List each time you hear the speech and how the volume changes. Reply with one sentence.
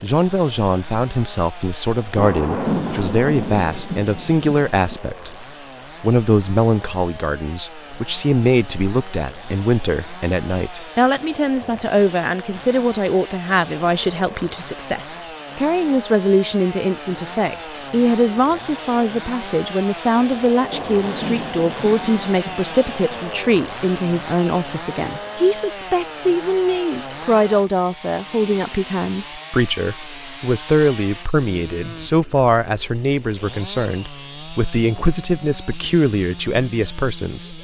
The speech can be heard from 0.0 to 37.6 s, at a steady volume.